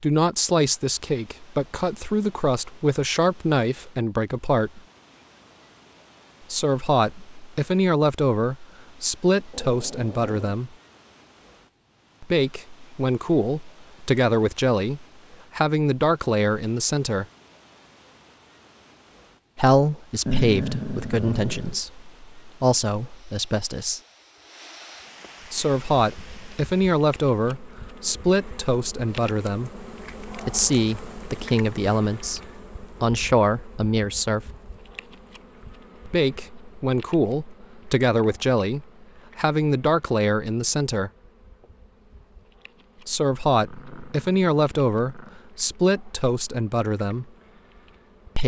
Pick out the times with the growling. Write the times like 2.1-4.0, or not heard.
9.5-10.6, 20.2-21.8, 43.5-45.5.